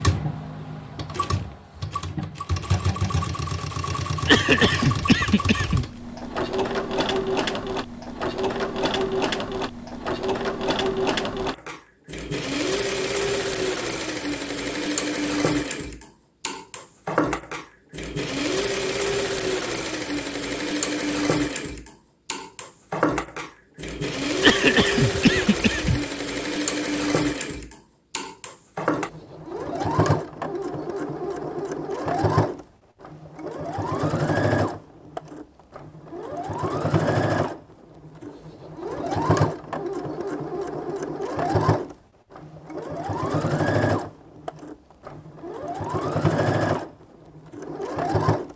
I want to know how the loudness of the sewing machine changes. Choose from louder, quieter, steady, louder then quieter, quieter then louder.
steady.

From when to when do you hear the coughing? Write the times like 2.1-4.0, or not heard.
4.2-5.8, 24.4-26.0.